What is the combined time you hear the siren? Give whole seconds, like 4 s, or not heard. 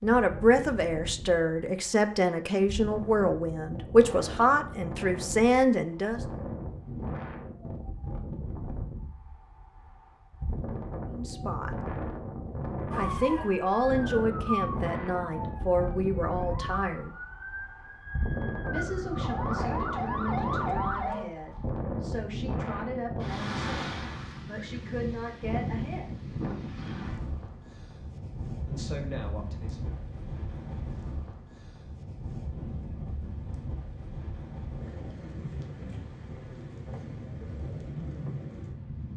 8 s.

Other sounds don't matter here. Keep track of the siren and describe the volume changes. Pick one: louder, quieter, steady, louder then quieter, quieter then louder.
quieter then louder.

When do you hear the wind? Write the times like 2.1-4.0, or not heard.
0.0-39.1.